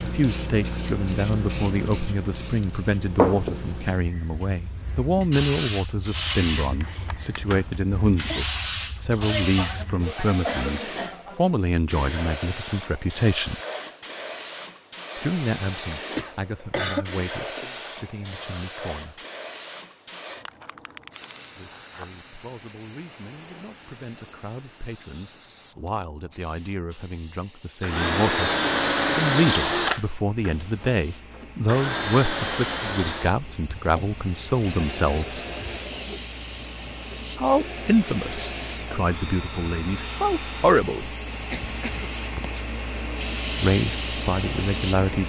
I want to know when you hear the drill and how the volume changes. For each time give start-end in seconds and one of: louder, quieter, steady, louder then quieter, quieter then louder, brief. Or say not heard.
6.0-8.6 brief
27.8-40.8 quieter.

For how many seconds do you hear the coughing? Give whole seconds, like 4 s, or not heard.
4 s.